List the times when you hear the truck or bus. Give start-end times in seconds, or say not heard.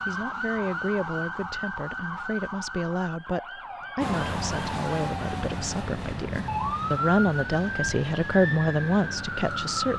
4.0-9.9.